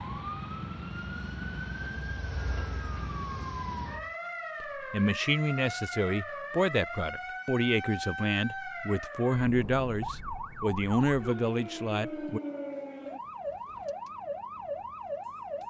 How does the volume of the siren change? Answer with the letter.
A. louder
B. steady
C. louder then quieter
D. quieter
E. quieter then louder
B.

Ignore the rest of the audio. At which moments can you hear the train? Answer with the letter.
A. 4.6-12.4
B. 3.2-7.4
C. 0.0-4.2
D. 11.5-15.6
C.